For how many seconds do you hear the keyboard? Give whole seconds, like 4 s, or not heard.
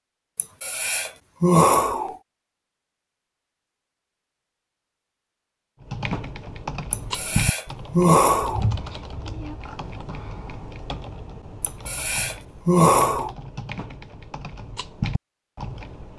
10 s.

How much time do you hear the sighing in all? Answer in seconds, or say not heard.
5 s.